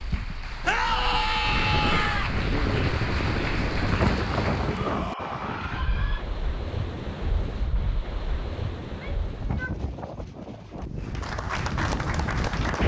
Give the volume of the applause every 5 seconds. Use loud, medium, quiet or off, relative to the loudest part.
loud, off, loud.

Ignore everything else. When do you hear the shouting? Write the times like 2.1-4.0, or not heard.
0.6-2.3, 4.6-6.2, 8.8-9.8.